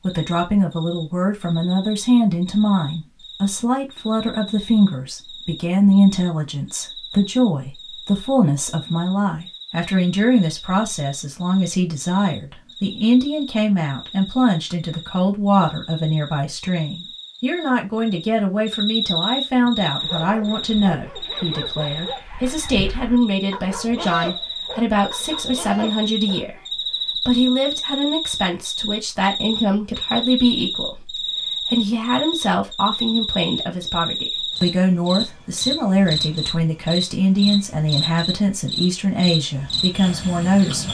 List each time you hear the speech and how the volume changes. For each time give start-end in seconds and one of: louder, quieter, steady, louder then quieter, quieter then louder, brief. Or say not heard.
0.0-40.8 steady.